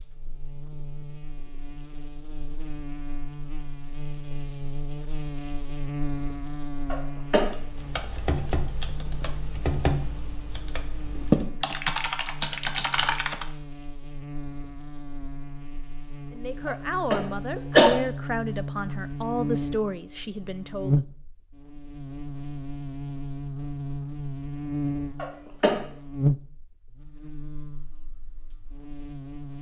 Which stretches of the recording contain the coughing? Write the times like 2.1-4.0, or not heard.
6.9-7.5, 16.6-17.9, 25.1-25.8.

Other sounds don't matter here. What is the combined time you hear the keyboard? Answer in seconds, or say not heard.
6 s.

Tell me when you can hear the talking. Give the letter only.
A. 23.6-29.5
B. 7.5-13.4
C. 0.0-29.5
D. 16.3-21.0
D.